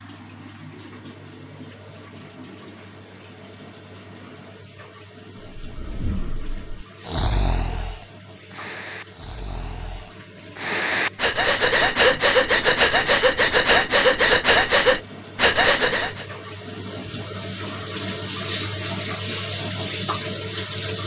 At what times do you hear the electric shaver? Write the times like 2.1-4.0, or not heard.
not heard.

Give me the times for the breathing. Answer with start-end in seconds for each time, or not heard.
5.5-16.2.